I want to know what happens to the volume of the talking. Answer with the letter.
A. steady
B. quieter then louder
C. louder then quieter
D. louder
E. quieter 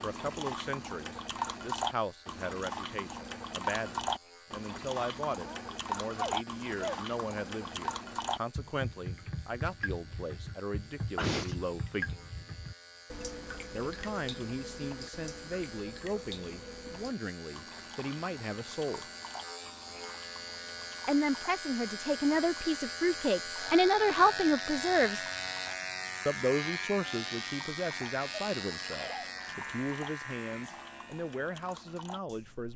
C.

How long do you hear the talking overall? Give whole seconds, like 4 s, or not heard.
28 s.